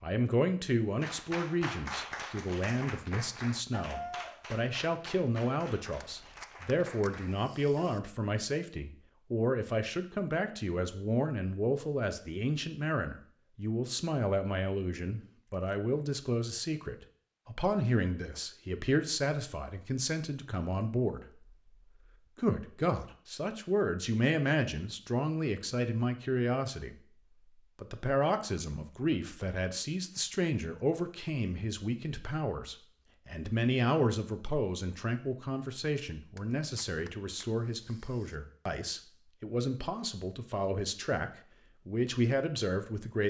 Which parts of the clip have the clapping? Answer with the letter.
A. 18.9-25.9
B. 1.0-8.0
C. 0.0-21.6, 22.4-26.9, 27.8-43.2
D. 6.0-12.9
B.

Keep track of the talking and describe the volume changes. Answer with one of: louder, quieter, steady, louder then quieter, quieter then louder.
steady.